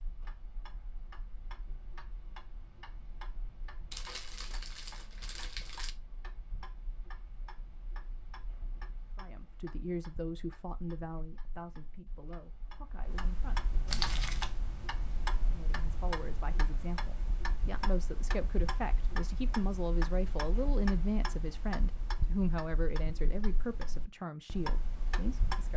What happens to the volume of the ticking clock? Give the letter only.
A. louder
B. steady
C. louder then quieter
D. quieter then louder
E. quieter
A.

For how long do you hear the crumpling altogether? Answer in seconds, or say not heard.
3 s.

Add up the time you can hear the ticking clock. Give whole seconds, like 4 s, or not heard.
26 s.